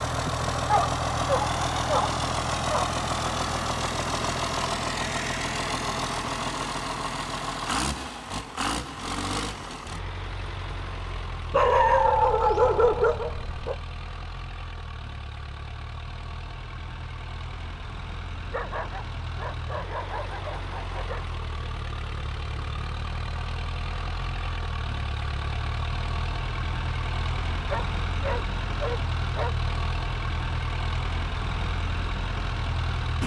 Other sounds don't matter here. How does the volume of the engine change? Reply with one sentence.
The volume of the engine goes down, then up.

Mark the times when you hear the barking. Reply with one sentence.
You can hear the barking from 0.2 to 2.9 s, from 11.5 to 13.8 s, from 18.4 to 21.2 s and from 27.7 to 29.6 s.